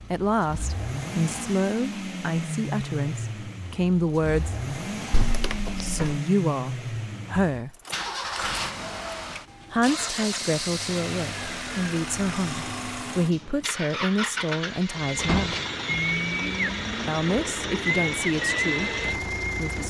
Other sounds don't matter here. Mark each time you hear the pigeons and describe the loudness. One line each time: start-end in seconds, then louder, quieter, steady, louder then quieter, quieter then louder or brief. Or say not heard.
14.9-19.8 quieter then louder.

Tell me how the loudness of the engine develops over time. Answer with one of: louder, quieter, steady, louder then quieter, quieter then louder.
steady.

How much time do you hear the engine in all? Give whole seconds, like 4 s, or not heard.
20 s.